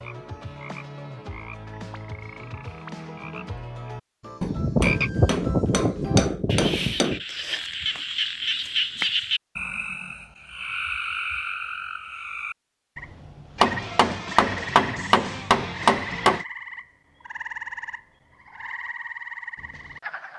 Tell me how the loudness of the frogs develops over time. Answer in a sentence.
The volume of the frogs goes up, then down.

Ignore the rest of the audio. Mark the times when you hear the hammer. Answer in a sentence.
You can hear the hammer from 4.4 to 7.2 s and from 13.6 to 16.4 s.